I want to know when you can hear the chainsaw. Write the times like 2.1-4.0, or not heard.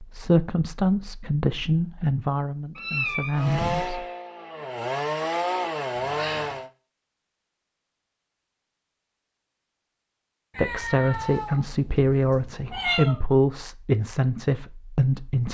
3.4-6.7.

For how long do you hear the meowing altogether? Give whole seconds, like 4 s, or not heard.
4 s.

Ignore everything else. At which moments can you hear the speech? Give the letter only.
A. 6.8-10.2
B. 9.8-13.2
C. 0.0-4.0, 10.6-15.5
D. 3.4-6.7
C.